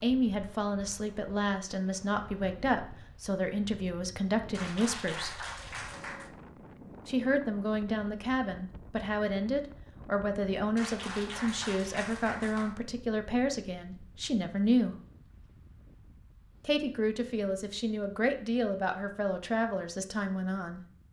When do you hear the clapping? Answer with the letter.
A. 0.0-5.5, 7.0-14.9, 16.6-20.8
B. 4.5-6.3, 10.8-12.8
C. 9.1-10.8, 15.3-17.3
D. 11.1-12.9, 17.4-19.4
B.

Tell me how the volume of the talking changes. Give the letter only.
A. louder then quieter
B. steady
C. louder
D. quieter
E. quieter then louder
B.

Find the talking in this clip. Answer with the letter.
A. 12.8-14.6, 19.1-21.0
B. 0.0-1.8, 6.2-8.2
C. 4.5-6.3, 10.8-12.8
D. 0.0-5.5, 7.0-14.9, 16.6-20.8
D.